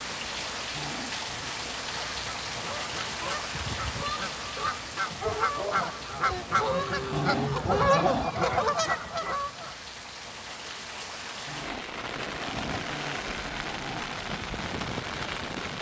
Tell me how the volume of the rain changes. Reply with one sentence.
The volume of the rain goes down, then up.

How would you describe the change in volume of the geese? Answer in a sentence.
The volume of the geese goes up.